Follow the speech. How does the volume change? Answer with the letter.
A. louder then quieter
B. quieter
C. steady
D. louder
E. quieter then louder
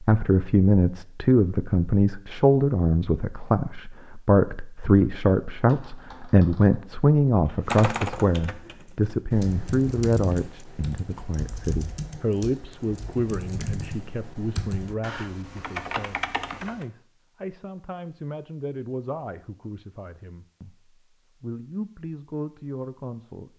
B.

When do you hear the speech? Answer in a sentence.
You can hear the speech from 0.0 to 23.5 s.